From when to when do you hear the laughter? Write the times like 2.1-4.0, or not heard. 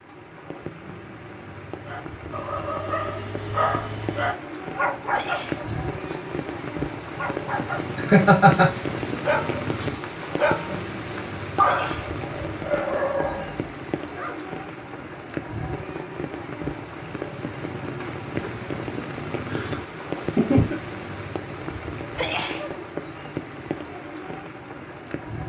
8.0-8.7, 19.4-20.8.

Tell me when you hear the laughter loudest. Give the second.
8 s.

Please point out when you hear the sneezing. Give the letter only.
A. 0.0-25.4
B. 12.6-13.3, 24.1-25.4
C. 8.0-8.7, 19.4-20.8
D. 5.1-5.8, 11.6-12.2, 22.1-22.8
D.